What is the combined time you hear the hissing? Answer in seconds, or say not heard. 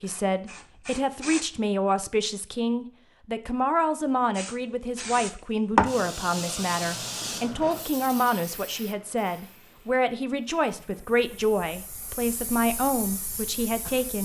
11 s.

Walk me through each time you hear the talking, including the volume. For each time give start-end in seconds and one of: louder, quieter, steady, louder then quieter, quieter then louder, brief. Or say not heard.
0.0-14.2 steady.